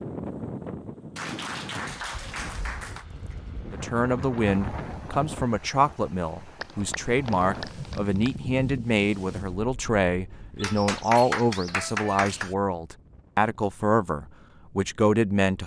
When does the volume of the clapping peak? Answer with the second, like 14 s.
11 s.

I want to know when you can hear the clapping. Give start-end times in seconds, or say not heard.
1.1-3.0, 6.6-8.3, 10.6-12.6.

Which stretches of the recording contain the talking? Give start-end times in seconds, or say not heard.
3.7-15.6.